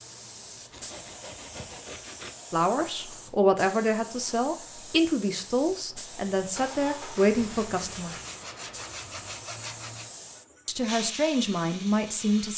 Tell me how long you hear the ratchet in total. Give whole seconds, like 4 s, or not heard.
not heard.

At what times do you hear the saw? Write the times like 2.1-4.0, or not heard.
0.7-2.4, 7.2-10.1.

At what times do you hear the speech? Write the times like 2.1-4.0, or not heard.
2.5-8.2, 10.7-12.5.